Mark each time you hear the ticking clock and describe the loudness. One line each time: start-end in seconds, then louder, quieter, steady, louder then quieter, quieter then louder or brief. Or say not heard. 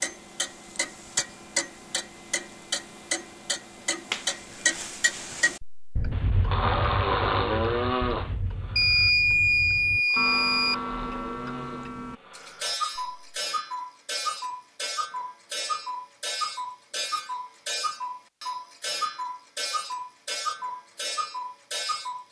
0.0-22.2 steady.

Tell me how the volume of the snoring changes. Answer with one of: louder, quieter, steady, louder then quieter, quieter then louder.
quieter then louder.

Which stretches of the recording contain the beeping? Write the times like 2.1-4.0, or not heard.
8.8-10.8.